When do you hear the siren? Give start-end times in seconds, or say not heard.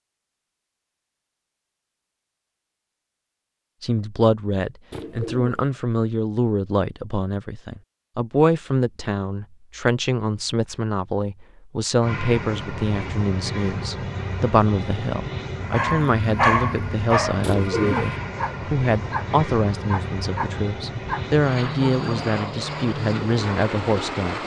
not heard.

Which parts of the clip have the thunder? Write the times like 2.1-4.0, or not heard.
not heard.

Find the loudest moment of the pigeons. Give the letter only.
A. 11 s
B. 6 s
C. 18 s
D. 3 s
C.